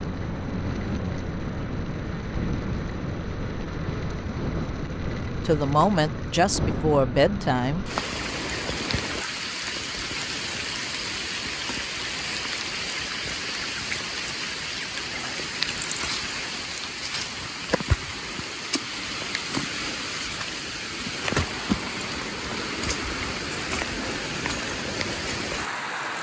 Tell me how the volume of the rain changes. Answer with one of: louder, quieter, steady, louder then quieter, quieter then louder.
steady.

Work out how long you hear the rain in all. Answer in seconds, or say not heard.
26 s.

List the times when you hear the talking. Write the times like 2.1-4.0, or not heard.
5.4-7.8.